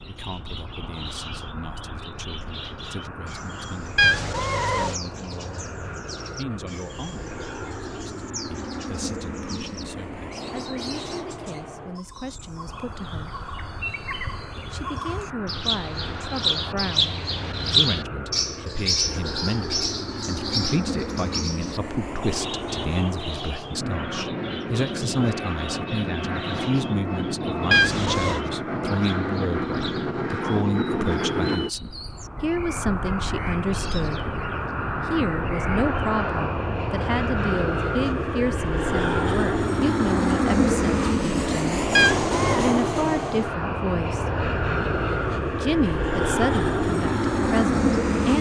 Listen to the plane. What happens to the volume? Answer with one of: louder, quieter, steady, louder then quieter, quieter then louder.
louder.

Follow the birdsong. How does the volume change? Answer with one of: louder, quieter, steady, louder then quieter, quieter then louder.
louder then quieter.